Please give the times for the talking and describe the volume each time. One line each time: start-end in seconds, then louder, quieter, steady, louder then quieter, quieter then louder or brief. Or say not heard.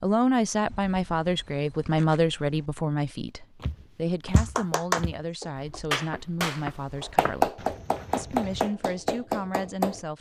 0.0-10.1 quieter.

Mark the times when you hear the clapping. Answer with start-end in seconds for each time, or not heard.
4.3-10.0.